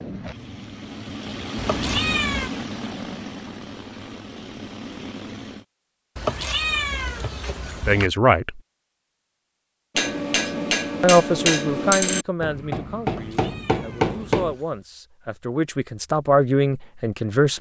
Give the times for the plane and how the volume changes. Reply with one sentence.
The plane can be heard from 0.0 to 5.7 s, getting louder then quieter.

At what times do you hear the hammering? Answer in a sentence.
You can hear the hammering from 9.9 to 14.6 s.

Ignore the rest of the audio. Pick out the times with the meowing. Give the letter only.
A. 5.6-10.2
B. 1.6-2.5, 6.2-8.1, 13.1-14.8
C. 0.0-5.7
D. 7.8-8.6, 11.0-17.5
B.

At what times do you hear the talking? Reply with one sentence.
The talking can be heard from 7.8 to 8.6 s and from 11.0 to 17.5 s.